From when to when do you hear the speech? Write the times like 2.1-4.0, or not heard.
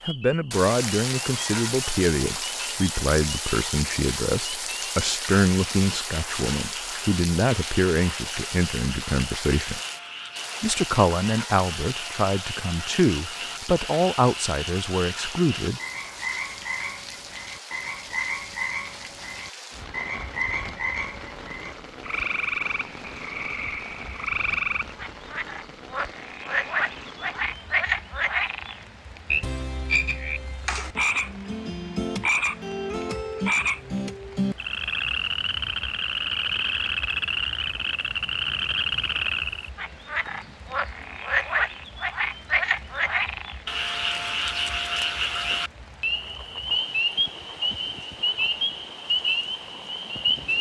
0.1-9.8, 10.6-15.8.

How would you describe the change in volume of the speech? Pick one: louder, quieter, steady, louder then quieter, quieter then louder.
steady.